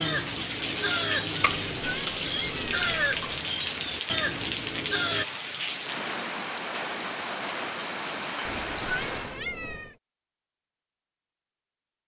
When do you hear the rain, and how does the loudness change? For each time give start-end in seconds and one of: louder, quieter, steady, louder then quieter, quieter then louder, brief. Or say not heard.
0.0-9.4 steady.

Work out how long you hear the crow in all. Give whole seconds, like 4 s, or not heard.
5 s.